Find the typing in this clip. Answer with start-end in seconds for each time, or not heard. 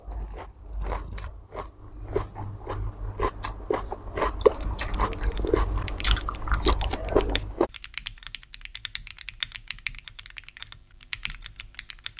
4.9-12.1.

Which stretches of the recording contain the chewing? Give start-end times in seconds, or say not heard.
0.0-7.7.